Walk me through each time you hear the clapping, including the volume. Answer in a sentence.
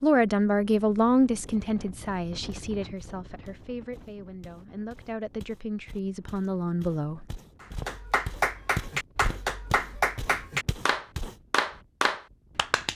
The clapping can be heard from 7.6 to 12.9 s, at a steady volume.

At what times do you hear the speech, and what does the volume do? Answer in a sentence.
You can hear the speech from 0.0 to 7.2 s, getting quieter then louder.